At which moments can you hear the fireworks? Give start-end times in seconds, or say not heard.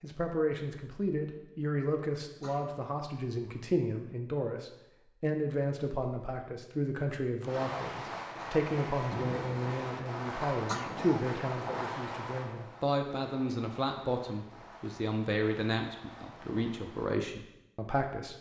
7.5-17.1.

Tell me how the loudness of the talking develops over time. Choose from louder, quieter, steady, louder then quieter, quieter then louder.
steady.